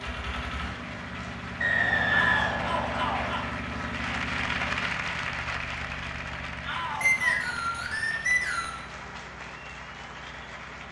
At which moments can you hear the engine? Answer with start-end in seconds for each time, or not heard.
0.0-10.8.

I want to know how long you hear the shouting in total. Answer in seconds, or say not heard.
2 s.